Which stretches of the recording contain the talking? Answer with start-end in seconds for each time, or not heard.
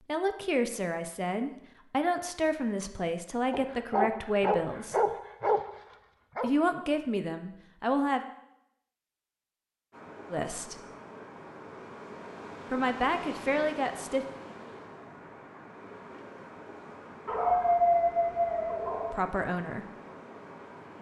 0.1-5.0, 6.4-8.2, 10.3-10.8, 12.7-14.2, 19.1-19.9.